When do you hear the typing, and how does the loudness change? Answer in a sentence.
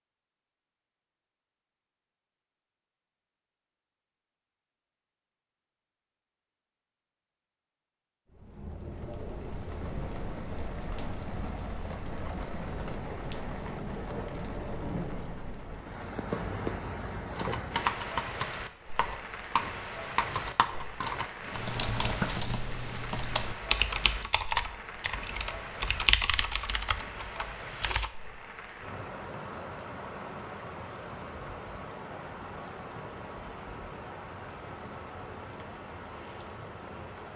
You can hear the typing from 17.3 to 28.1 s, at a steady volume.